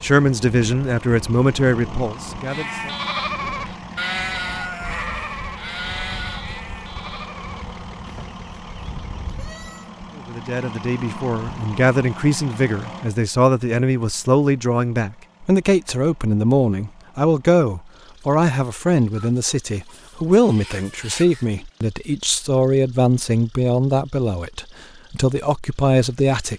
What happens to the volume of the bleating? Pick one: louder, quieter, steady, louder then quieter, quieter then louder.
quieter.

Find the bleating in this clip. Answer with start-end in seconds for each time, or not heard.
2.5-9.9.